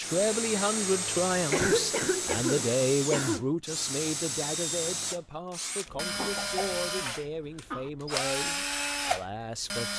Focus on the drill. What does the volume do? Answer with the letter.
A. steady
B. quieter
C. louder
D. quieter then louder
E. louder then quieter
A.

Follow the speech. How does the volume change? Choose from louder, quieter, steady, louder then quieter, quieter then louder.
quieter.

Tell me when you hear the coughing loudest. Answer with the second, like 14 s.
2 s.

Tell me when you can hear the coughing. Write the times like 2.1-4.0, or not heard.
1.5-3.5, 6.0-7.9.